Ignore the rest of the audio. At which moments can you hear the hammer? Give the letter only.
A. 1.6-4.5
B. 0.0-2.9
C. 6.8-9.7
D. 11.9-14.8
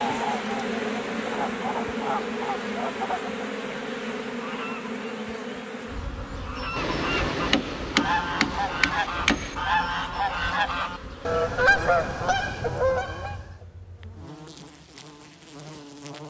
C.